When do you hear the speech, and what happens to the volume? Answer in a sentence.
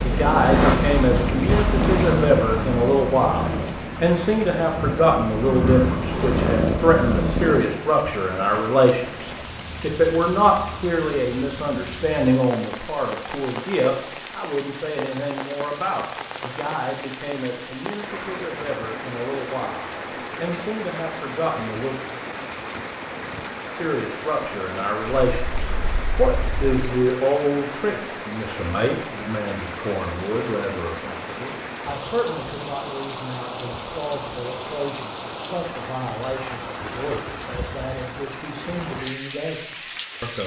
You can hear the speech from 0.0 to 21.9 s, getting quieter; and from 23.8 to 40.4 s, getting quieter.